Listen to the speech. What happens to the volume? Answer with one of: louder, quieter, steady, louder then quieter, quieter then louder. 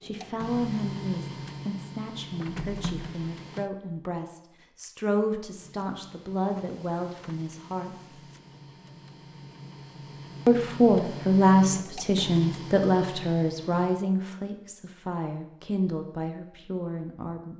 louder then quieter.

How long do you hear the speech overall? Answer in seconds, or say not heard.
15 s.